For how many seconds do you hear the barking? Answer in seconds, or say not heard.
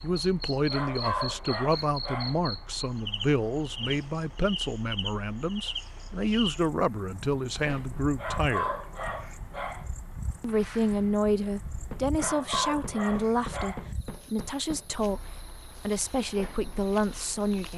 5 s.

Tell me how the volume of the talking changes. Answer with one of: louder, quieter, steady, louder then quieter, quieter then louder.
steady.